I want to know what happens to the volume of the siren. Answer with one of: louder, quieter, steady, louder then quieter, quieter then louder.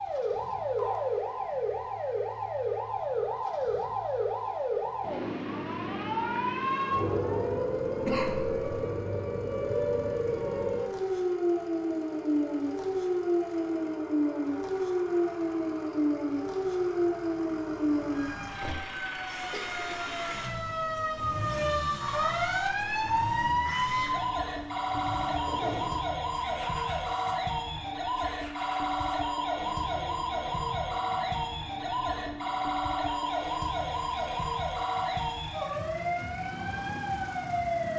steady.